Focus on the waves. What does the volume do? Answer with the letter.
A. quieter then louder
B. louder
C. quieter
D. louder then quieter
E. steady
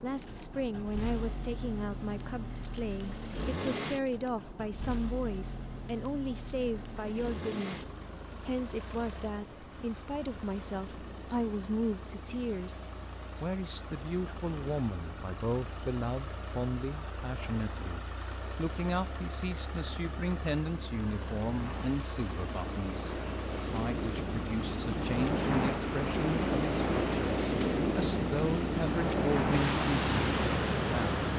B.